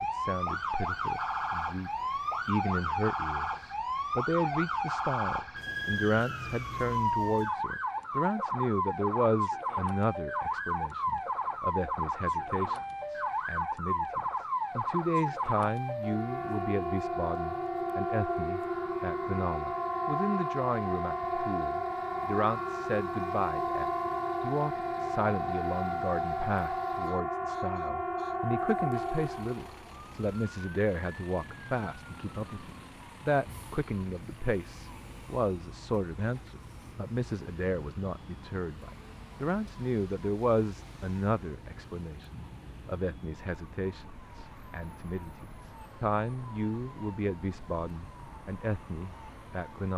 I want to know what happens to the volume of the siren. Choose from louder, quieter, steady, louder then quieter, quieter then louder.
quieter.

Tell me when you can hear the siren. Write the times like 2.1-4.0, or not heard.
0.0-49.9.